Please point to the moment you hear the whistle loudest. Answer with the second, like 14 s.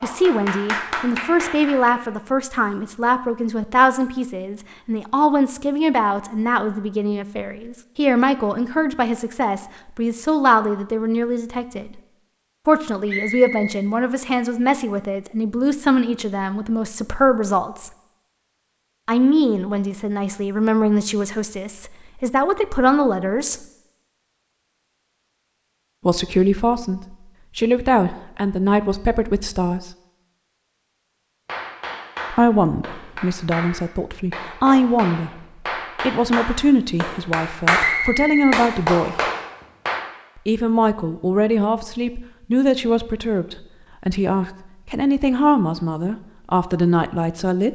38 s.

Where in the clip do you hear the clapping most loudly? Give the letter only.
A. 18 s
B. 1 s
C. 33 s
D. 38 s
D.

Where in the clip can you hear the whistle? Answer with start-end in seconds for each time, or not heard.
13.1-13.8, 37.8-39.4.